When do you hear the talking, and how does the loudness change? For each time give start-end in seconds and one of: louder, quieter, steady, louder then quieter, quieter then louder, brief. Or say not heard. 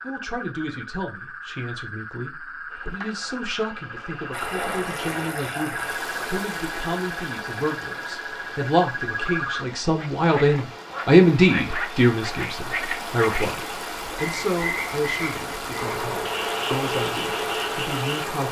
0.0-18.4 louder then quieter.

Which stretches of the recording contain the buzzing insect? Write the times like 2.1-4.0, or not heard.
2.6-5.3, 15.7-18.4.